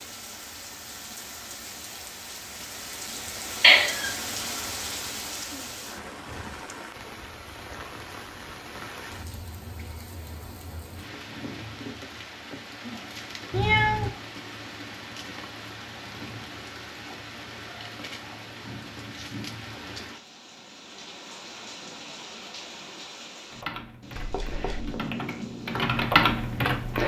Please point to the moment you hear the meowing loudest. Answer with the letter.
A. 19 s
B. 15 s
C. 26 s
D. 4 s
D.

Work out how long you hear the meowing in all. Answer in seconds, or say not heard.
2 s.